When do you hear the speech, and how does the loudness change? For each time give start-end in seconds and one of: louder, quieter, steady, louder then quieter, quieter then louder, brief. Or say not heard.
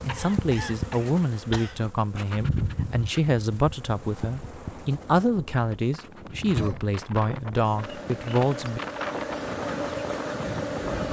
0.0-8.8 steady.